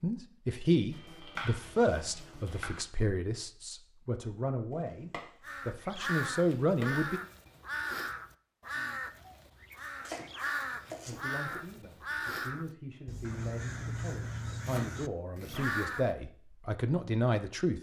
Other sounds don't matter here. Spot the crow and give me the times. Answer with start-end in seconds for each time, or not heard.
5.4-16.1.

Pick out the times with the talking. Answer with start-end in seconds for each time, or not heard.
0.0-7.2, 11.1-17.7.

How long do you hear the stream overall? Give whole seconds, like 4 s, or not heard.
not heard.